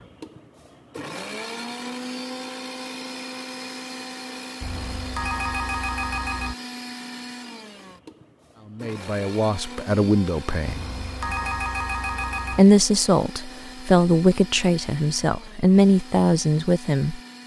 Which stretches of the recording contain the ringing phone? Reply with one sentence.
You can hear the ringing phone from 4.6 to 6.5 s and from 10.7 to 12.6 s.